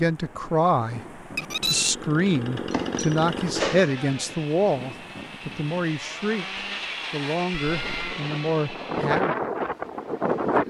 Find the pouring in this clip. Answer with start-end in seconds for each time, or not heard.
not heard.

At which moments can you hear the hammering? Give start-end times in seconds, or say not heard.
2.7-4.0.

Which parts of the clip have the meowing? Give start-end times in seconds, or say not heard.
1.4-1.9, 7.5-8.2.